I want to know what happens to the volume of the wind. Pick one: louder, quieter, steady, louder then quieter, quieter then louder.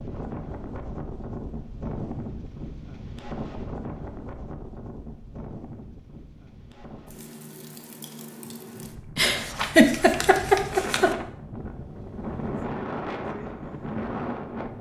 quieter then louder.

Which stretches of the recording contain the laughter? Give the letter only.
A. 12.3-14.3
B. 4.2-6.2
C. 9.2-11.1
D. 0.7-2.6
C.